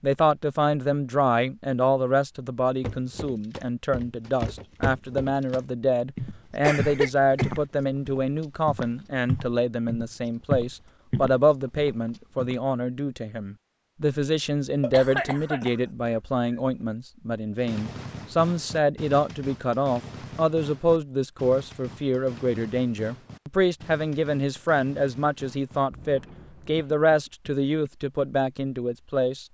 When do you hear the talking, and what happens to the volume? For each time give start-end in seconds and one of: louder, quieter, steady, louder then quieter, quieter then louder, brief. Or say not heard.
0.0-29.4 steady.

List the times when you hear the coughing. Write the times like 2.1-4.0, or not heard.
6.6-7.6, 14.8-16.6, 26.8-27.9.